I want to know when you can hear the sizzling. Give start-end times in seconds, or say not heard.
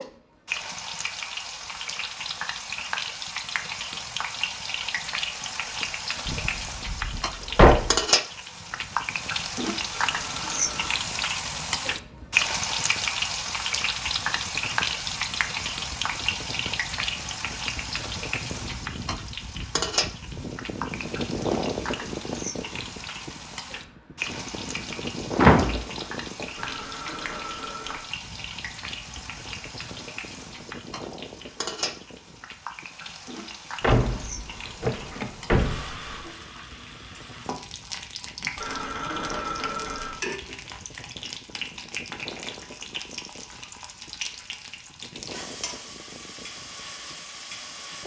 0.0-48.0.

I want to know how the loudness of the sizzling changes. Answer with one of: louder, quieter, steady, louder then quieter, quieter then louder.
quieter.